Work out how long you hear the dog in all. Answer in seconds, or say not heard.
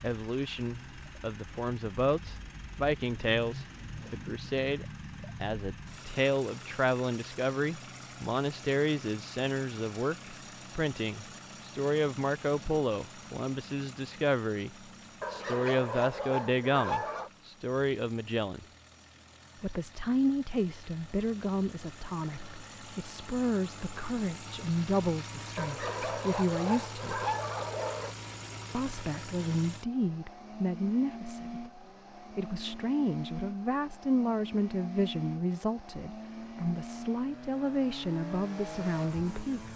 5 s.